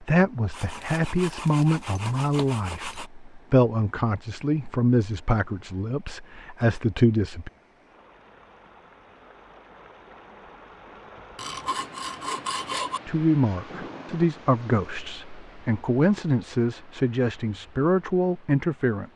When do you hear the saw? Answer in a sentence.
The saw can be heard from 0.5 to 3.1 s and from 11.3 to 13.0 s.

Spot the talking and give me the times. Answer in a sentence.
The talking can be heard from 0.0 to 7.5 s and from 13.1 to 19.1 s.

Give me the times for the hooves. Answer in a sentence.
You can't hear the hooves here.